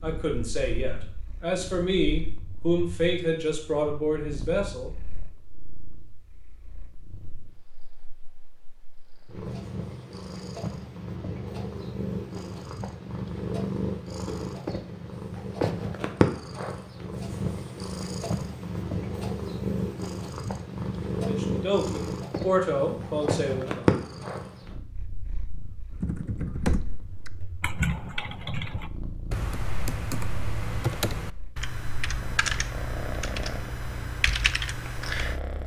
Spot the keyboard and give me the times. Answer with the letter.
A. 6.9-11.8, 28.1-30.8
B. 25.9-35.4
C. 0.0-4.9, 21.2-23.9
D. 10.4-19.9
B.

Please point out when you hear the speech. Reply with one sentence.
The speech can be heard from 0.0 to 4.9 s and from 21.2 to 23.9 s.